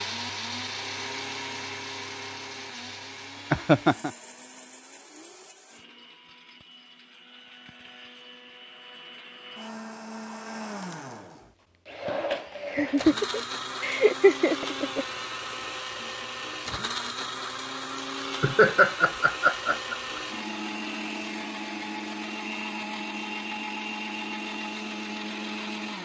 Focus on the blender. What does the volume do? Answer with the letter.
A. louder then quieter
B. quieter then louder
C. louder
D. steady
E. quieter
B.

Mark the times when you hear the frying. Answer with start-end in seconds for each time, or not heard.
not heard.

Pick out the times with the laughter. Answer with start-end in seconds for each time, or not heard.
3.5-4.1, 12.7-15.1, 18.2-20.2.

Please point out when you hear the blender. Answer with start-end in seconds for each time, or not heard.
0.0-26.0.